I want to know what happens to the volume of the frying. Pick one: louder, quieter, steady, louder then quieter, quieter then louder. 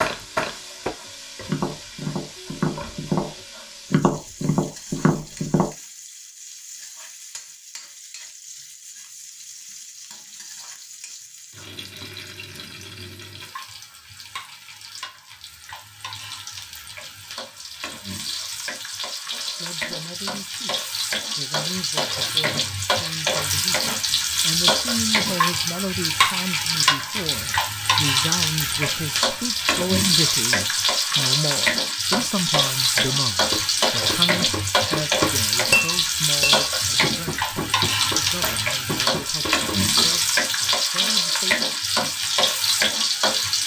louder.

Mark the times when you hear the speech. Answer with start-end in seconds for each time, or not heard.
19.4-41.6.